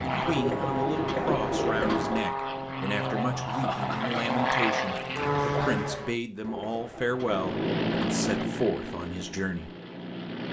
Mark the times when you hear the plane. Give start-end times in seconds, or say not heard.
0.0-6.2, 7.2-10.4.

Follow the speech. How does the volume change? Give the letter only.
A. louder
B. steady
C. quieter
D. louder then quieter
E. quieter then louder
B.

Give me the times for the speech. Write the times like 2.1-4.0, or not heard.
0.1-9.7.